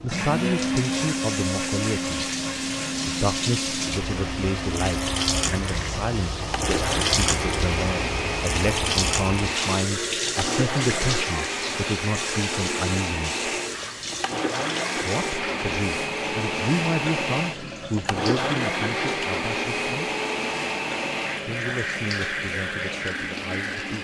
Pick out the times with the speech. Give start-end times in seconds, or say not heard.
0.0-2.3, 3.0-13.4, 14.9-20.1, 21.4-23.9.